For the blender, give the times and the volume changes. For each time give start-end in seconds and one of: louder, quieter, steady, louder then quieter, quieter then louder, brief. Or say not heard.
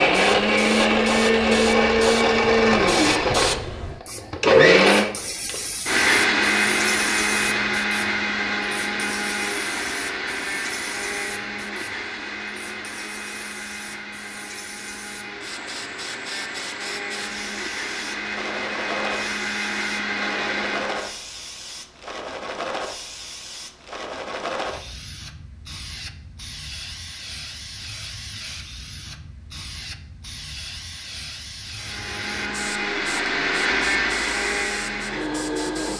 0.0-21.1 quieter then louder
31.8-35.9 louder then quieter.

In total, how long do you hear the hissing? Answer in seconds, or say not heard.
36 s.